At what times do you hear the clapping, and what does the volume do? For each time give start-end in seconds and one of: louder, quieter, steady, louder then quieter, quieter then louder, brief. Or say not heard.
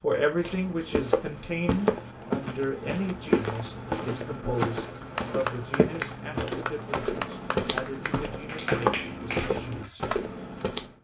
4.9-10.2 steady.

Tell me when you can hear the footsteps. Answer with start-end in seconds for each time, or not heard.
0.3-10.9.